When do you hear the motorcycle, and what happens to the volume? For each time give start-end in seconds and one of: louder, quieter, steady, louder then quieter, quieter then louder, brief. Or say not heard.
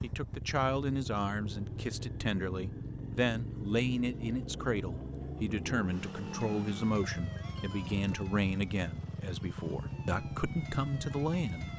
0.0-11.7 steady.